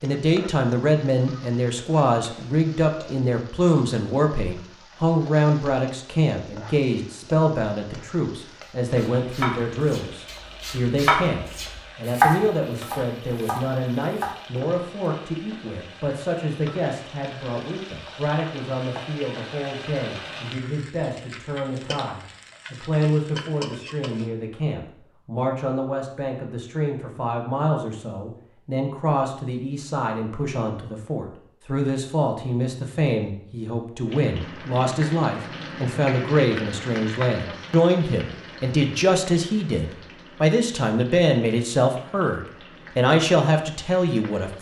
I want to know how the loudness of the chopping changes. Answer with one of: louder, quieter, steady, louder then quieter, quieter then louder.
louder then quieter.